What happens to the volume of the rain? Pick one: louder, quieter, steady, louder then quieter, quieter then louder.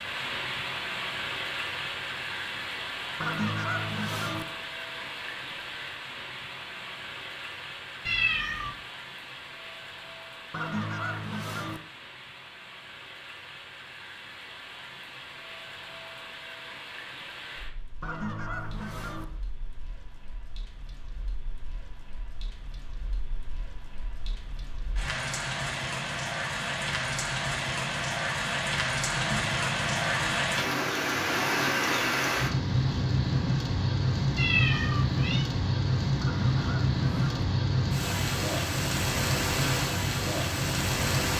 quieter then louder.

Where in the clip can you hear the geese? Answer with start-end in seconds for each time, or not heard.
3.2-4.5, 10.5-11.8, 18.0-19.2, 29.1-30.4, 36.2-37.5.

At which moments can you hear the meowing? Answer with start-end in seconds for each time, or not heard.
8.1-8.8, 34.4-35.5.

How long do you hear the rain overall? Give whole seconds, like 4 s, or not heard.
41 s.